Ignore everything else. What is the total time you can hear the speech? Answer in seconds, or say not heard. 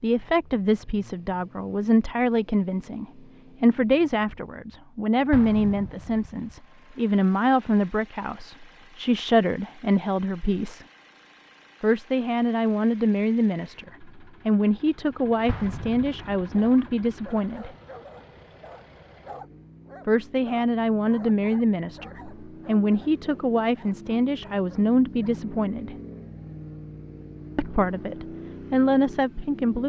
25 s.